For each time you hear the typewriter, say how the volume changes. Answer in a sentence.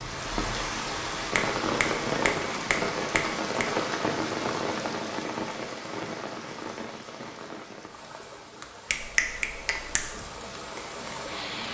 You can't hear the typewriter here.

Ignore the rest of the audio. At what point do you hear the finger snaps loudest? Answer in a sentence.
The volume of the finger snaps peaks at 9 seconds.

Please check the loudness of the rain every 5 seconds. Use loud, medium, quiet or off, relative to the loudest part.
loud, medium, medium.